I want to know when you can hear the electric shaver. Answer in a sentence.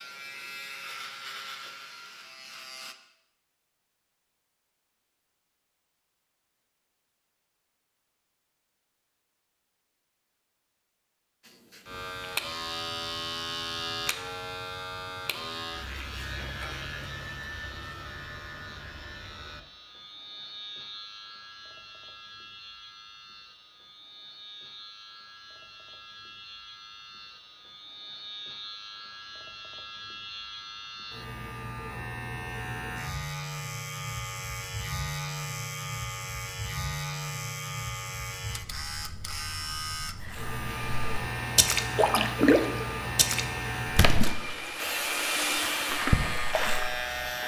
The electric shaver can be heard from 0.0 to 3.0 s and from 11.4 to 47.4 s.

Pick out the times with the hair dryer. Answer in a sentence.
The hair dryer can be heard from 40.6 to 47.4 s.